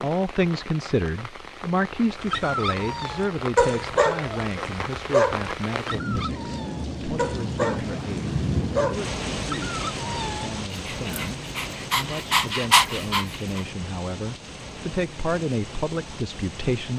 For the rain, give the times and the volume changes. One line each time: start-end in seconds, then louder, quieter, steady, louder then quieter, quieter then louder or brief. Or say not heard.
0.0-16.9 louder then quieter.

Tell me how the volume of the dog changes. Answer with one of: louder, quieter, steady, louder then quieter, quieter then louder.
quieter then louder.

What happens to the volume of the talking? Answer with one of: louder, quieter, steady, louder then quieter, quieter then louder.
quieter then louder.